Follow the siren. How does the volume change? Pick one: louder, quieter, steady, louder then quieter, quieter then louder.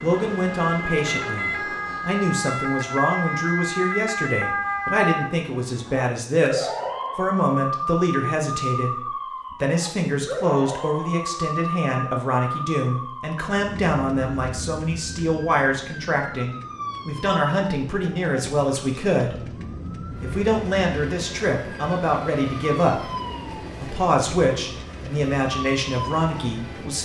quieter.